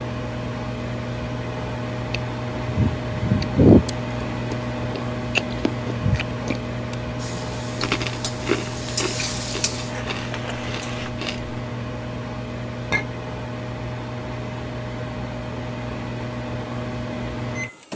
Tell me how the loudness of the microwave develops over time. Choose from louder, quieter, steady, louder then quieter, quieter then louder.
steady.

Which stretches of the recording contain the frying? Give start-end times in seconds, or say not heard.
7.2-11.1.